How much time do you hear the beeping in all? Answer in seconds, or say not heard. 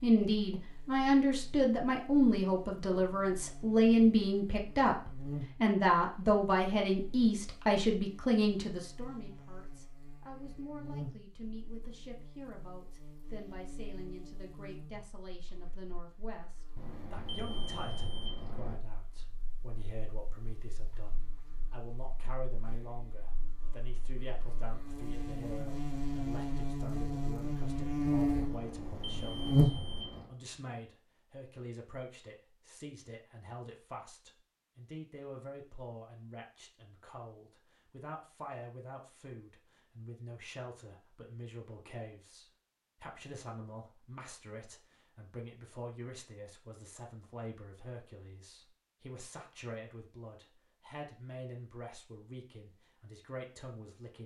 4 s.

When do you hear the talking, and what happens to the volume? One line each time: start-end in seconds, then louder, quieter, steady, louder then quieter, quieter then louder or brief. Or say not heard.
0.0-54.2 quieter.